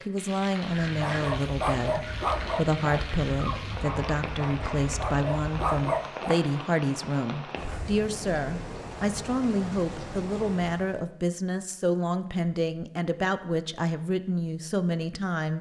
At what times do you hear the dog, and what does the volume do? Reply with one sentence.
The dog can be heard from 1.0 to 6.4 s, getting quieter then louder.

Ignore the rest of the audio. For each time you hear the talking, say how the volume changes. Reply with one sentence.
The talking can be heard from 0.1 to 15.5 s, at a steady volume.